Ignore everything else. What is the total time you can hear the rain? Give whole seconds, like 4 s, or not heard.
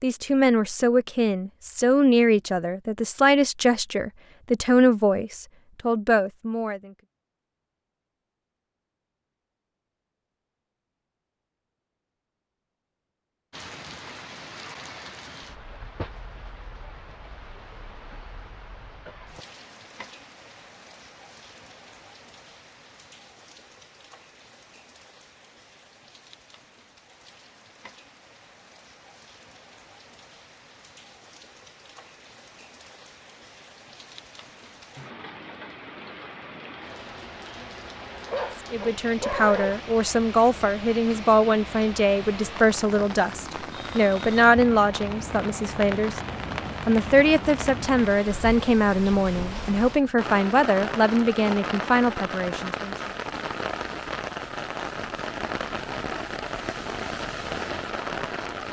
45 s.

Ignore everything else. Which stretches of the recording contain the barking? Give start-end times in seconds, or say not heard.
38.2-39.8.